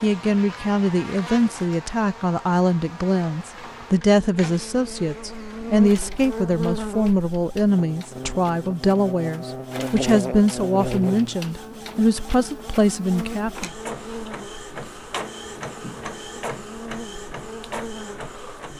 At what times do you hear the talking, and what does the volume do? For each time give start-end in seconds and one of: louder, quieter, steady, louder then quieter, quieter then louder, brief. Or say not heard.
0.0-13.7 steady.